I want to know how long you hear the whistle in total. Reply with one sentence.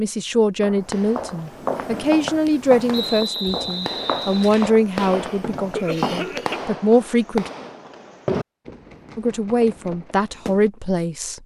You can hear the whistle for 2 seconds altogether.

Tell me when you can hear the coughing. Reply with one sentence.
You can hear the coughing from 5.0 to 6.6 s.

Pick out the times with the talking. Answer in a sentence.
The talking can be heard from 0.0 to 7.5 s and from 9.2 to 11.4 s.